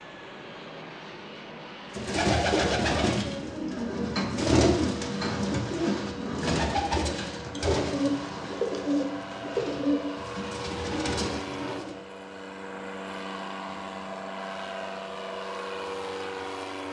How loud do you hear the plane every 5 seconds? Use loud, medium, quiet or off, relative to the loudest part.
medium, medium, loud, loud.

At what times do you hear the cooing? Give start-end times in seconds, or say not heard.
1.9-11.9.